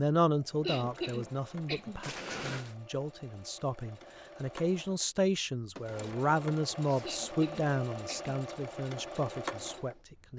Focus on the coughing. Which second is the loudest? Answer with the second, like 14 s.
1 s.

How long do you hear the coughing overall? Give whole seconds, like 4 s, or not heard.
3 s.